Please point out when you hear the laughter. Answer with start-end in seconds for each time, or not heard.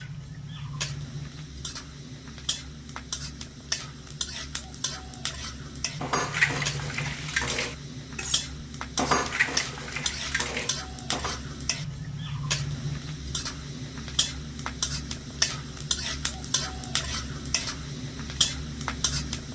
not heard.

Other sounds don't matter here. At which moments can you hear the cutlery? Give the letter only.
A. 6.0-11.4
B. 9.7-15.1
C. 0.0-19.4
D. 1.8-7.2
A.